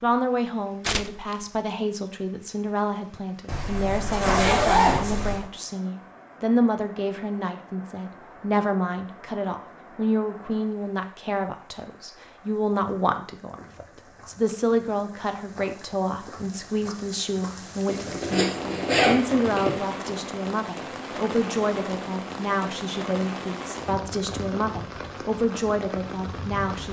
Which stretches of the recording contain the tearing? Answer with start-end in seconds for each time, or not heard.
0.8-1.4.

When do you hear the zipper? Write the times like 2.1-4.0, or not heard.
3.5-5.4, 17.9-19.8.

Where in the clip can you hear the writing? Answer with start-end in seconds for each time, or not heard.
not heard.